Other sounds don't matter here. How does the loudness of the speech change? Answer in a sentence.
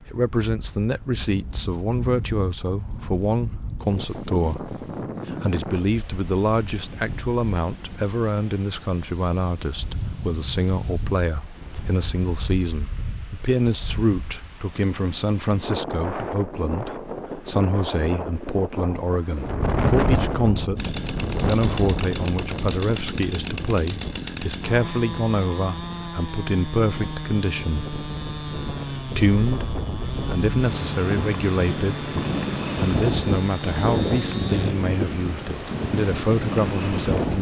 The volume of the speech stays about the same.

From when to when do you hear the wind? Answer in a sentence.
You can hear the wind from 0.0 to 37.3 s.